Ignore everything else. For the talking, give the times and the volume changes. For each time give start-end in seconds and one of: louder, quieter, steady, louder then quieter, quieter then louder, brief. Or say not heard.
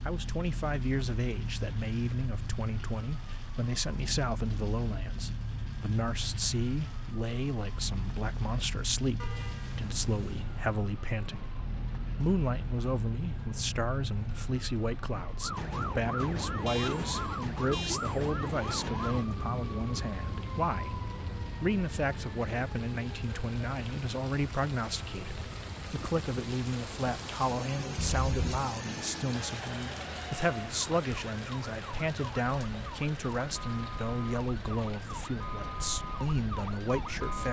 0.0-37.4 steady.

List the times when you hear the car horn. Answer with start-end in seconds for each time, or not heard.
9.2-10.4, 16.6-18.1, 27.9-28.6.